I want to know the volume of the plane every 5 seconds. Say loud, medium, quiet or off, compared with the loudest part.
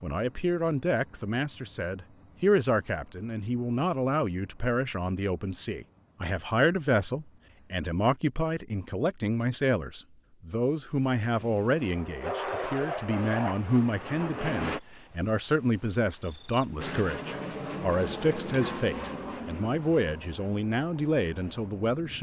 off, off, loud, loud, quiet.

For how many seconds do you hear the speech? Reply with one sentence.
The speech can be heard for 22 seconds in total.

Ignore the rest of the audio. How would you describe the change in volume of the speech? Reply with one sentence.
The volume of the speech stays about the same.